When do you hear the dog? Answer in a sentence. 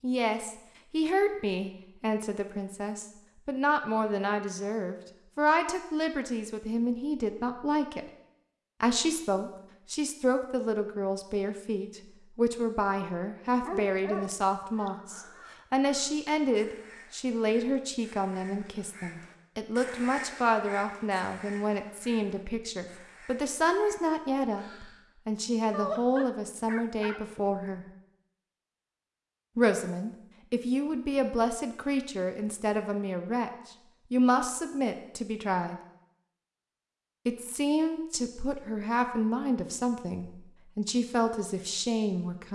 The dog can be heard from 13.6 to 14.9 s and from 25.7 to 27.6 s.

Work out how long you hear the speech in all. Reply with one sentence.
You can hear the speech for 38 seconds altogether.